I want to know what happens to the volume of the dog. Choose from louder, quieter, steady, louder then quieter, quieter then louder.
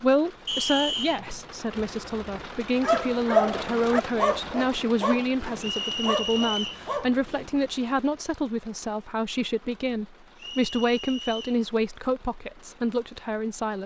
quieter.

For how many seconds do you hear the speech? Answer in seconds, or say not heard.
14 s.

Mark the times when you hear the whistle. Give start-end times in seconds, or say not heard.
0.5-1.2, 5.6-6.8, 10.3-11.6.